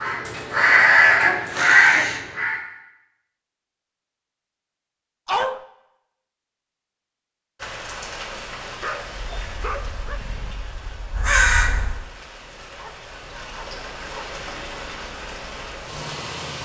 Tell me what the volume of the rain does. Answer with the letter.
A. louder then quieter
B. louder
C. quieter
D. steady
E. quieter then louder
E.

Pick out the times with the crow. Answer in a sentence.
The crow can be heard from 0.0 to 2.6 s and from 9.2 to 12.1 s.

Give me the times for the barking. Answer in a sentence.
The barking can be heard from 0.2 to 2.2 s, from 5.2 to 5.7 s, from 8.8 to 10.6 s and from 12.8 to 14.2 s.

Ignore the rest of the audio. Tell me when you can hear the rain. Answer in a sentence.
The rain can be heard from 7.5 to 16.6 s.